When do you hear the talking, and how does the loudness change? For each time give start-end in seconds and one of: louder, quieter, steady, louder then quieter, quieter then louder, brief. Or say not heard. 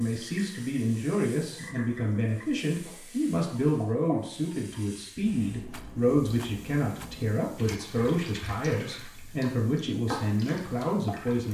0.0-11.4 steady.